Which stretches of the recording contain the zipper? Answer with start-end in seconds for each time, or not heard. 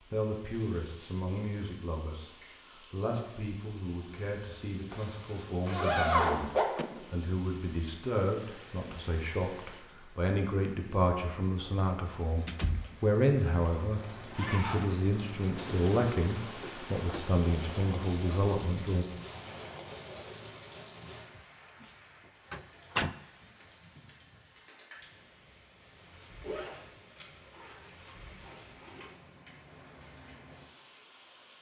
4.9-6.7, 14.0-15.7, 26.4-29.1.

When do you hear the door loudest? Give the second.
23 s.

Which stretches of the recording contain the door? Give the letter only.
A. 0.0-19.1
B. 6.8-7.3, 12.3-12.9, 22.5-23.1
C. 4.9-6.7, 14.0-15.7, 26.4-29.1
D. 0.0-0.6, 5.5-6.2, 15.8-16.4
B.